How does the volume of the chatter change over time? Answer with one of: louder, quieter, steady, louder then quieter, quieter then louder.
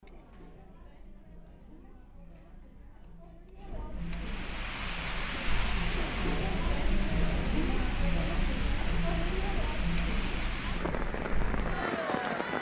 louder.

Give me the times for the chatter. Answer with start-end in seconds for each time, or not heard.
0.0-12.5.